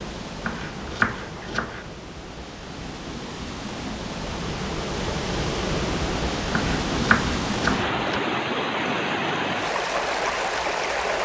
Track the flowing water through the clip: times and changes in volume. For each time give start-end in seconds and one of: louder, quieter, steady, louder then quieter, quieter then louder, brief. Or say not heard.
0.0-11.2 louder.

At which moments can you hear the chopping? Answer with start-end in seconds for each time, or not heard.
0.4-1.9, 6.5-8.2.